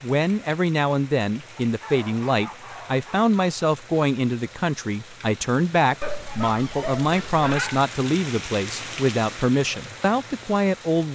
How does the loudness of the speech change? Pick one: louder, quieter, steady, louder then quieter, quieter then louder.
steady.